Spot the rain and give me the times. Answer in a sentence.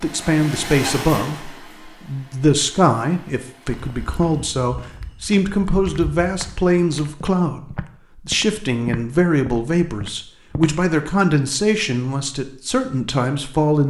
The rain can't be heard in this clip.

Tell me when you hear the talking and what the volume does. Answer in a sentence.
The talking can be heard from 0.0 to 13.8 s, at a steady volume.